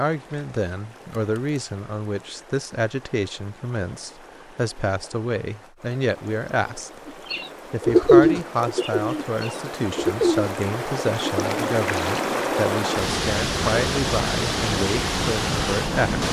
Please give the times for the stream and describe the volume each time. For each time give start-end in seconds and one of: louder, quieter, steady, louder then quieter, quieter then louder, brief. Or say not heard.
0.0-16.2 louder.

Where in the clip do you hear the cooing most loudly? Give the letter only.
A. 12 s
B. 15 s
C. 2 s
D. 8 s
D.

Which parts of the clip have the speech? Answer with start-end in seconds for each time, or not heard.
0.0-6.9, 7.7-16.2.